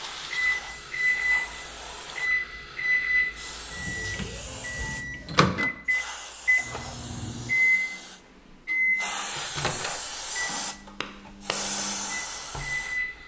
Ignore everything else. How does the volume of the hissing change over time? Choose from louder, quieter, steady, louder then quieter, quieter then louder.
louder.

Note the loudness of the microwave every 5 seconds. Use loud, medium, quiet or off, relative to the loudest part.
loud, loud, medium.